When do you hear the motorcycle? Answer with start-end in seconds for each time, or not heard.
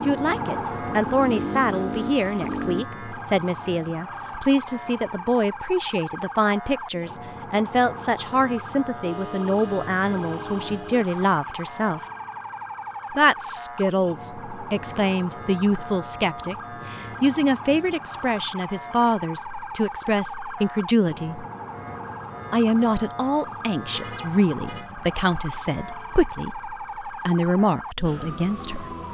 0.0-2.9.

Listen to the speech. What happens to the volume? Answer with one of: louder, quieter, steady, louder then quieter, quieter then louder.
steady.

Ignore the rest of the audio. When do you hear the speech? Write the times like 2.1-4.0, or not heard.
0.1-12.0, 13.1-21.4, 22.5-28.9.